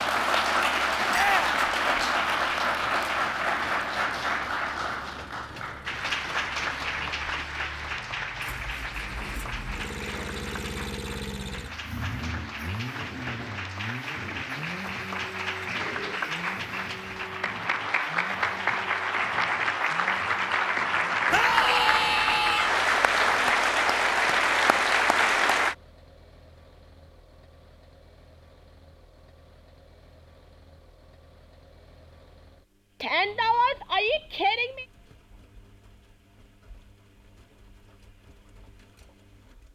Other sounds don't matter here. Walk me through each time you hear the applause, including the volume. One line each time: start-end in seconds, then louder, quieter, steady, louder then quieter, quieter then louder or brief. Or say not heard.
0.0-25.8 quieter then louder.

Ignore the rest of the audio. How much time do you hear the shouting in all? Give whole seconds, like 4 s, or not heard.
4 s.